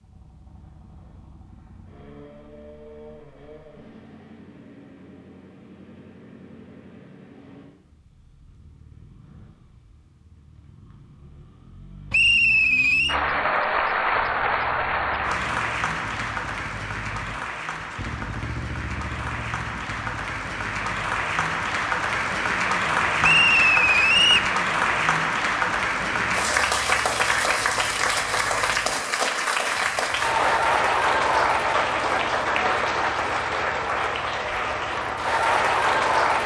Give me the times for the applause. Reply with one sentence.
The applause can be heard from 13.1 to 36.4 s.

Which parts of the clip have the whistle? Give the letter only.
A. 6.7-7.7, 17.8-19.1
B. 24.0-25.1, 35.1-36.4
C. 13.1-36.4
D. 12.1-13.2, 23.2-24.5
D.